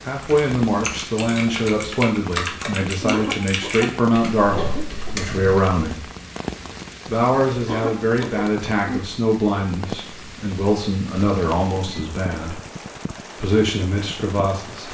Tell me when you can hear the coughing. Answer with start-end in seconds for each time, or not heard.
3.1-5.2, 7.7-8.5.